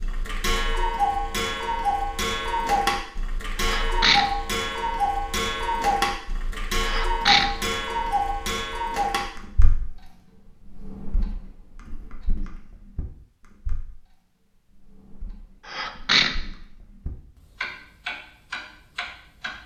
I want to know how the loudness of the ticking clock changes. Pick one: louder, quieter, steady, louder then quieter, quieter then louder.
quieter then louder.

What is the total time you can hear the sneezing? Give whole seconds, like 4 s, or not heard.
2 s.